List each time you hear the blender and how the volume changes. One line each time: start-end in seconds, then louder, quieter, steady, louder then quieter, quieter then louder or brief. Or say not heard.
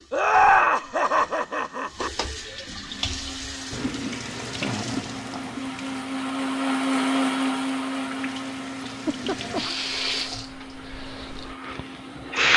2.8-12.5 louder then quieter.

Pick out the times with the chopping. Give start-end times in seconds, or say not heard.
not heard.